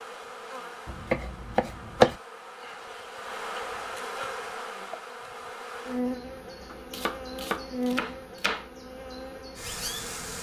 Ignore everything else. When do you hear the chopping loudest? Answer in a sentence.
The volume of the chopping peaks at 2 seconds.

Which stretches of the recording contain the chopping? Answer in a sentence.
You can hear the chopping from 0.8 to 2.1 s and from 6.7 to 8.7 s.